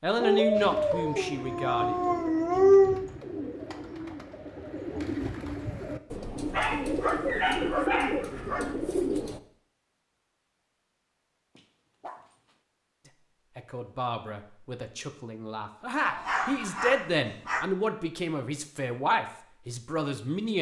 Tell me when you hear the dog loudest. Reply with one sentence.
The loudest moment of the dog is at 3 seconds.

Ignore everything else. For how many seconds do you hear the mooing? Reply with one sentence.
You can't hear the mooing here.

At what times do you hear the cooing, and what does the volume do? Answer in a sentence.
The cooing can be heard from 0.5 to 9.4 s, getting louder.